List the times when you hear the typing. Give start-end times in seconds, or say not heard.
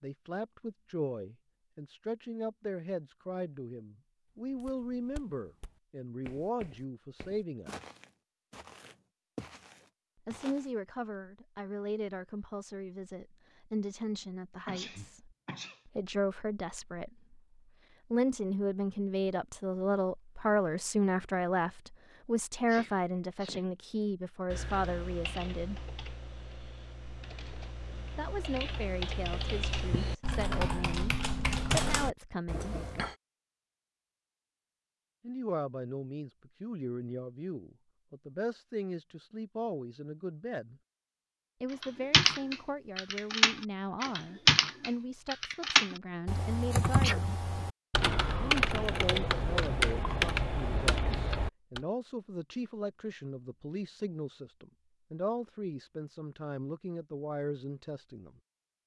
24.5-33.1, 41.8-51.8.